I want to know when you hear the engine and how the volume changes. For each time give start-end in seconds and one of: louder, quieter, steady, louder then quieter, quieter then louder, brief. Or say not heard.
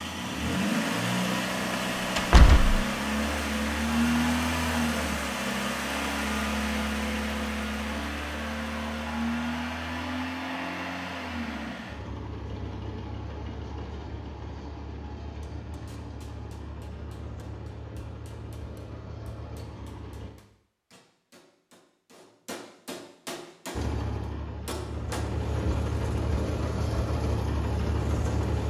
0.0-20.3 quieter
23.7-28.6 louder.